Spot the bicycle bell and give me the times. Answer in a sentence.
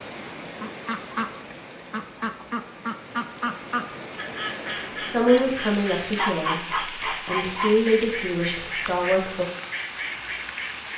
You can't hear the bicycle bell here.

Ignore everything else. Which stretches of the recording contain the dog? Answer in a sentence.
The dog can be heard from 6.0 to 7.8 s.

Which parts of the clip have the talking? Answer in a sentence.
You can hear the talking from 5.0 to 9.4 s.